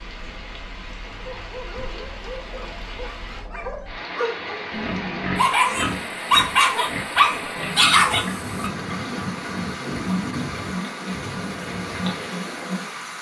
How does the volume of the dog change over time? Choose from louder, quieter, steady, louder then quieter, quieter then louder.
louder.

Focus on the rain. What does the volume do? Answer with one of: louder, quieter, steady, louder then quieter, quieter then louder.
louder.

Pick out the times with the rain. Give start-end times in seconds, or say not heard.
0.0-13.1.